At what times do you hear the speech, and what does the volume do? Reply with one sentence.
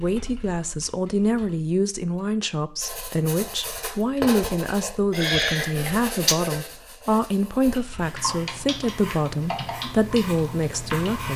The speech can be heard from 0.0 to 11.3 s, at a steady volume.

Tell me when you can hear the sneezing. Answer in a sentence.
The sneezing can be heard from 5.1 to 6.3 s.